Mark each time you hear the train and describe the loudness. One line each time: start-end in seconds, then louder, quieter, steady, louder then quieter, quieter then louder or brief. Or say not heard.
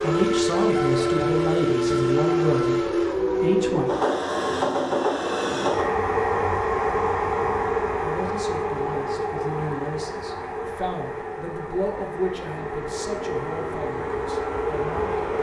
0.0-15.3 quieter.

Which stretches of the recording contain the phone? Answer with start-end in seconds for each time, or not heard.
not heard.